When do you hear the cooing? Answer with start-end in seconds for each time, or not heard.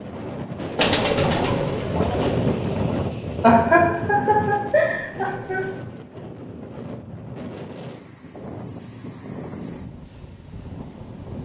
0.8-2.4.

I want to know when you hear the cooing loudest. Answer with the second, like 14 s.
1 s.